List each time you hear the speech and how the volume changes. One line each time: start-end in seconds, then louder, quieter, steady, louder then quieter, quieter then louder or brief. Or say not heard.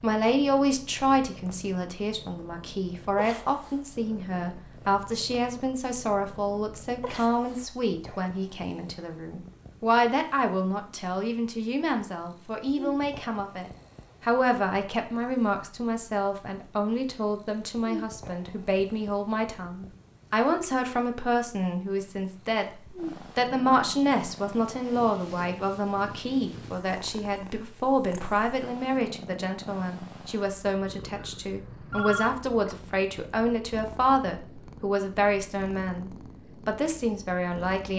0.0-37.9 steady.